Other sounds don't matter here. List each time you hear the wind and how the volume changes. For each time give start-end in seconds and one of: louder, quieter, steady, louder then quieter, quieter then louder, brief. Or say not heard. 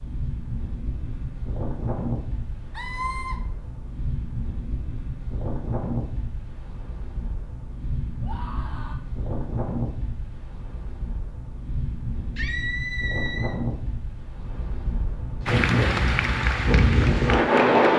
0.0-17.9 louder.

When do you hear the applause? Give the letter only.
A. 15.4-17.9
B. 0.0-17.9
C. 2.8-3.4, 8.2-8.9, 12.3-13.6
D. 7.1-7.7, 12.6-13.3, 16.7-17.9
A.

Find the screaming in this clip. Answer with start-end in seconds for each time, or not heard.
2.8-3.4, 8.2-8.9, 12.3-13.6.